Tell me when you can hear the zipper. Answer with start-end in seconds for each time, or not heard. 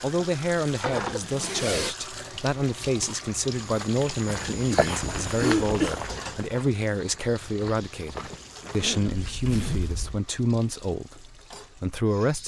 1.2-1.9, 5.0-6.2, 9.2-10.2.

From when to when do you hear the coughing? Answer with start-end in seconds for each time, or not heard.
0.9-1.4, 4.4-6.0, 8.6-9.2.